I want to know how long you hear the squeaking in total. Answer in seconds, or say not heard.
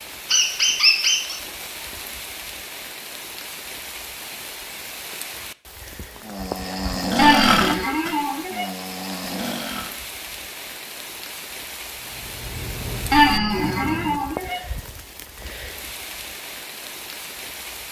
4 s.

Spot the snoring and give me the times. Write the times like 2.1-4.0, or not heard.
6.2-9.9, 12.1-14.3.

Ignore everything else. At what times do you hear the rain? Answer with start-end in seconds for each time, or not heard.
0.0-17.8.